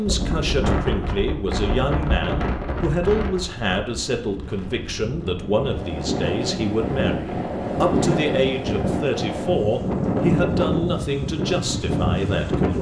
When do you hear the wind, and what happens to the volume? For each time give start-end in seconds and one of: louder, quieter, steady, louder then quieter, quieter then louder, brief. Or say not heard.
0.0-12.7 quieter then louder.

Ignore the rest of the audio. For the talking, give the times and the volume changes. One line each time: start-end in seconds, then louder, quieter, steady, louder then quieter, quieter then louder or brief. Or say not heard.
0.0-12.7 steady.